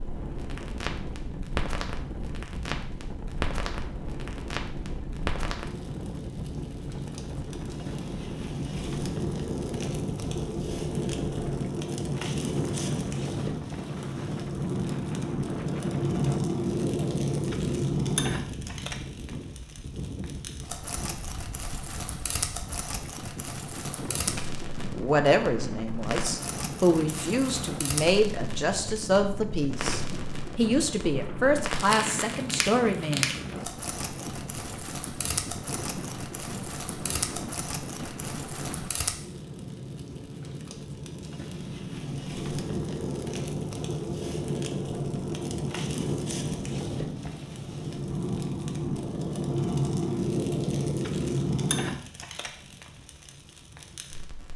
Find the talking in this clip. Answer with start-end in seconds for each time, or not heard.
24.9-33.4.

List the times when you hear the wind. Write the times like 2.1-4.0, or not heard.
0.0-38.9.